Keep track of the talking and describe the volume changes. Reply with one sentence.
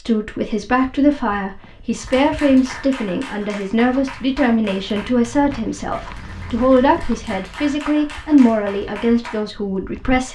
The loudness of the talking stays about the same.